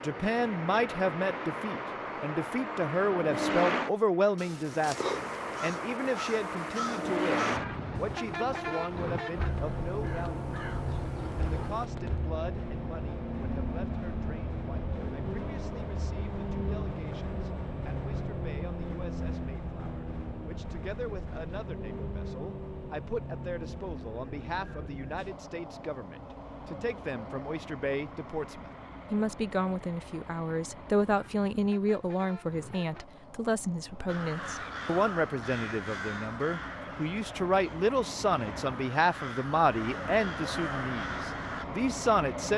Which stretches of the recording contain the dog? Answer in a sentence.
The dog can't be heard in this clip.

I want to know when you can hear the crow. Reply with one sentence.
You can hear the crow from 4.3 to 11.9 s and from 34.0 to 41.6 s.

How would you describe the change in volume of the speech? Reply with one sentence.
The volume of the speech goes down, then up.